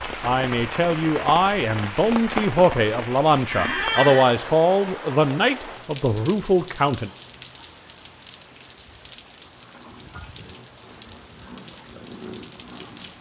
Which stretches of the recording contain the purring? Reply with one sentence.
You can hear the purring from 9.4 to 13.1 s.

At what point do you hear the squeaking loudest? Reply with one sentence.
The volume of the squeaking peaks at 4 seconds.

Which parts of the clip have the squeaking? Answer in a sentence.
The squeaking can be heard from 3.5 to 4.3 s and from 6.8 to 7.3 s.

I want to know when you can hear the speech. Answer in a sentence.
You can hear the speech from 0.2 to 7.1 s.